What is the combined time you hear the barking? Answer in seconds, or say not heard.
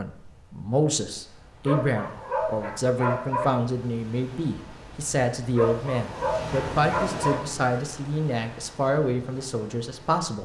4 s.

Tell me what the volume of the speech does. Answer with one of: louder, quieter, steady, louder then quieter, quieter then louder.
steady.